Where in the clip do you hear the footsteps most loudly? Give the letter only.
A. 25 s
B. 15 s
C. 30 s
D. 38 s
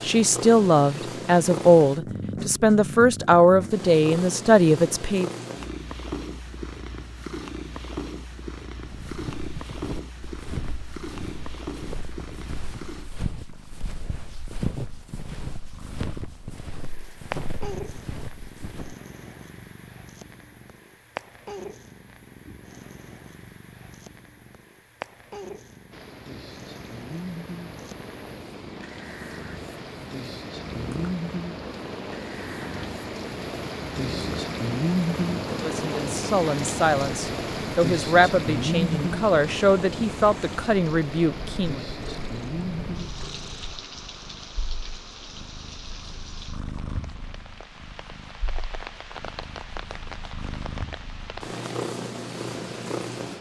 B.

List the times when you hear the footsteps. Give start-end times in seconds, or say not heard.
8.8-18.9.